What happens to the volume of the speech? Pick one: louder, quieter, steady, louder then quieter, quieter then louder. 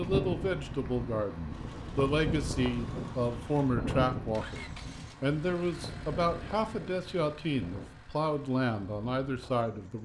steady.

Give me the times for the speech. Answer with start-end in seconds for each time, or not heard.
0.0-9.9.